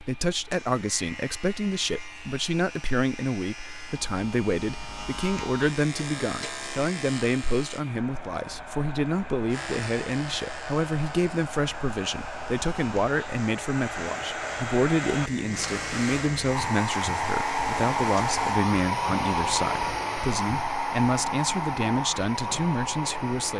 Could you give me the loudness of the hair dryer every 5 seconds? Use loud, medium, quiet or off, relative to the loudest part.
quiet, quiet, medium, loud, loud.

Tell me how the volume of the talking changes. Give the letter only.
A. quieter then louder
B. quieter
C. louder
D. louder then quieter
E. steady
E.